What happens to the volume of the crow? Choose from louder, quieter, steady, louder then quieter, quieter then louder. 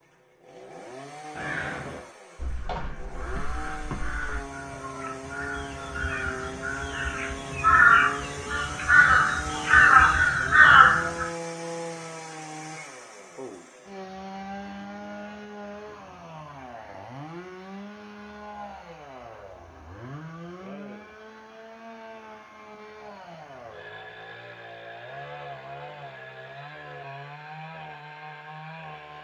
louder.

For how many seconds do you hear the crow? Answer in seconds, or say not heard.
10 s.